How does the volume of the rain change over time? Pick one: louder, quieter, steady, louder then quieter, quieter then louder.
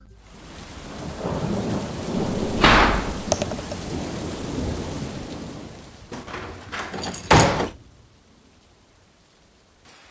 quieter.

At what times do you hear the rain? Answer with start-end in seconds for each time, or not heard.
0.0-10.0.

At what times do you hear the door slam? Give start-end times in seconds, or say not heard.
2.4-3.3, 6.1-7.7.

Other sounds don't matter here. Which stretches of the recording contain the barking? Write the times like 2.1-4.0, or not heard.
not heard.